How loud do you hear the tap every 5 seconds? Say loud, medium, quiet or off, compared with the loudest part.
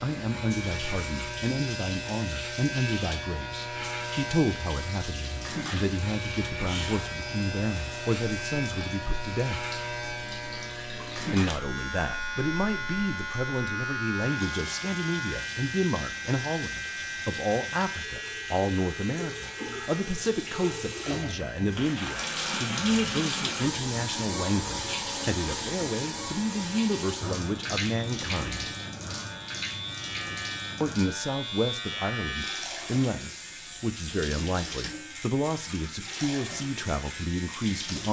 medium, medium, medium, medium, loud, loud, medium, medium.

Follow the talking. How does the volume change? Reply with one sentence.
The volume of the talking stays about the same.